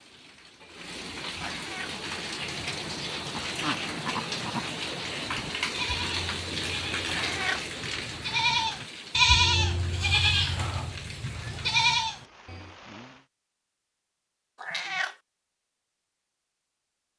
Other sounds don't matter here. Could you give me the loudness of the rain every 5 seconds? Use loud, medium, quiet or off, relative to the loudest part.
loud, loud, medium, off.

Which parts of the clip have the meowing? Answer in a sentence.
The meowing can be heard from 1.5 to 1.9 s, from 7.0 to 7.7 s and from 14.6 to 15.2 s.